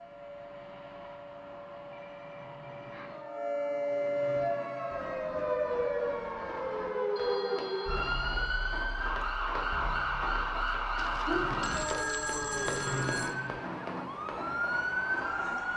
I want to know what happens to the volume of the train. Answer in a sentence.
The volume of the train goes up.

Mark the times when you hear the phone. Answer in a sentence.
The phone can be heard from 1.9 to 3.1 s, from 7.2 to 8.9 s and from 10.9 to 13.3 s.